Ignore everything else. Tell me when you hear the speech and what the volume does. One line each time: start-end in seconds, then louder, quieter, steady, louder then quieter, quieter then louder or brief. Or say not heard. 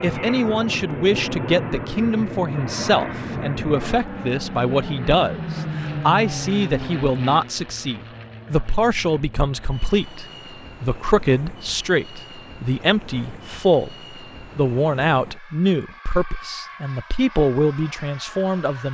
0.0-18.8 steady.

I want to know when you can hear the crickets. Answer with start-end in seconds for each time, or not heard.
not heard.